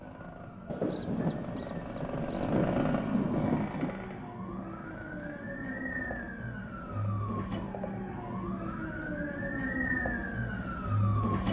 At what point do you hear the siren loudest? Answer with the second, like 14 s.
11 s.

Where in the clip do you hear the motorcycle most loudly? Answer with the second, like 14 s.
3 s.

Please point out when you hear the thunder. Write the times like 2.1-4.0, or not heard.
0.7-4.0.